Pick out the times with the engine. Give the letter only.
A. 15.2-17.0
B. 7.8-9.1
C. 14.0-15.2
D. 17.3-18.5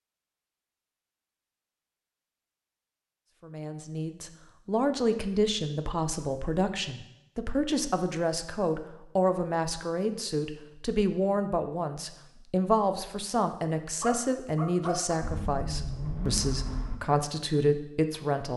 A.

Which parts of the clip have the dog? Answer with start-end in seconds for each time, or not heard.
14.0-15.2.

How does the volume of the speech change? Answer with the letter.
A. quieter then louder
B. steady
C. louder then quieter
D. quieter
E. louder
B.